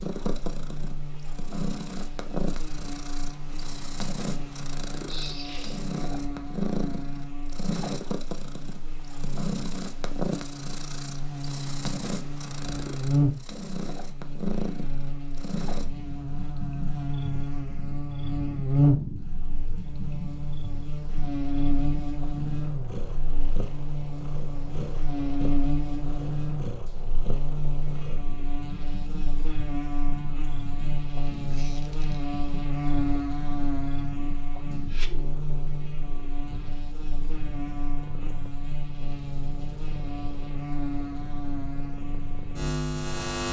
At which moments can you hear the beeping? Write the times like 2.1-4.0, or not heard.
not heard.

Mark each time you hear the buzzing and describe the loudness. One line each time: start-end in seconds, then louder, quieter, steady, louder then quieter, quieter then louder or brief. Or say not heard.
0.2-43.4 louder then quieter.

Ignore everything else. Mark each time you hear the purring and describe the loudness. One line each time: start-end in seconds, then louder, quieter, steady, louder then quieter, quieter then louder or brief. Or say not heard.
0.0-43.4 quieter.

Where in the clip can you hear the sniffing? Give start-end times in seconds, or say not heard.
5.0-5.8.